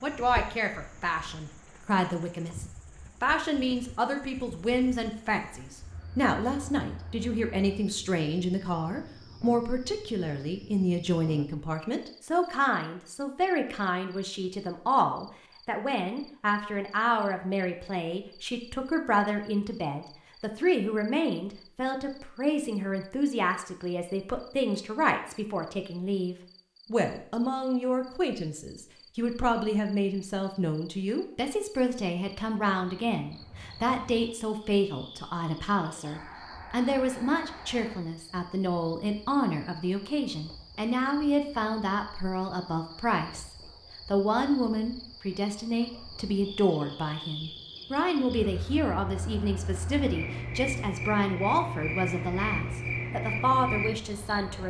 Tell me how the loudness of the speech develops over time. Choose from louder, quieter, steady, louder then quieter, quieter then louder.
steady.